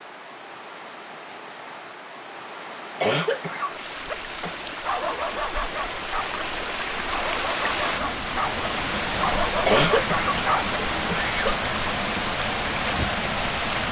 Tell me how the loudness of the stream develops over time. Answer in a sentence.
The volume of the stream goes up.